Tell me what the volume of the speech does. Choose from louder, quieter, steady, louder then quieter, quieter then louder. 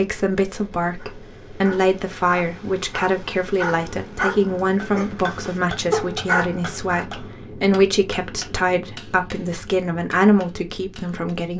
steady.